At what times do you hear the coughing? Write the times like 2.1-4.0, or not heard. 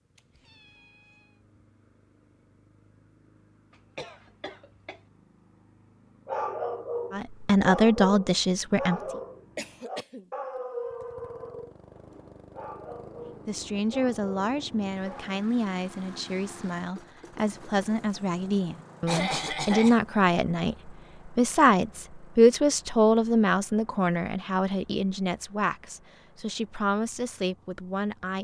4.0-5.0, 9.6-10.2, 19.1-20.0.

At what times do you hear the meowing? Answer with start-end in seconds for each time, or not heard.
0.1-1.4.